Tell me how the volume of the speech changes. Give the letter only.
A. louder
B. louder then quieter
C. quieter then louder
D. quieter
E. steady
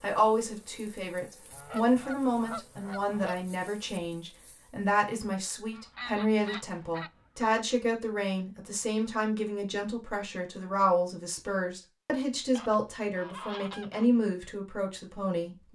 E.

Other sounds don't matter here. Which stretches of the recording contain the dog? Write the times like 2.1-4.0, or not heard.
not heard.